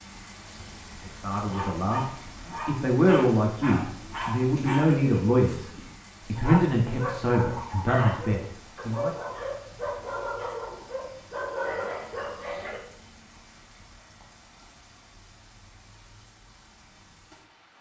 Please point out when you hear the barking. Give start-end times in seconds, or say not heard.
1.4-12.8.